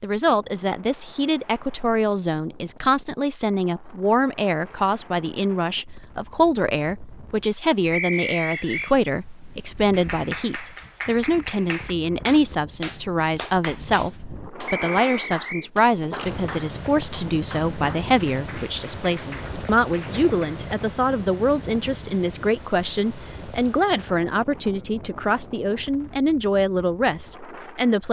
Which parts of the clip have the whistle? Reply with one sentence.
The whistle can be heard from 7.9 to 8.9 s and from 14.7 to 15.7 s.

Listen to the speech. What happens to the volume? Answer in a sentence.
The loudness of the speech stays about the same.